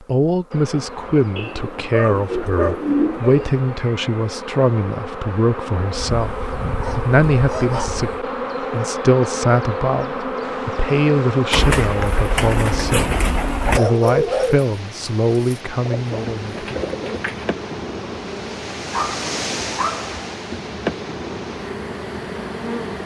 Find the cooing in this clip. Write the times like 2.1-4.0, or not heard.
1.4-3.6, 11.5-13.8, 15.8-17.5.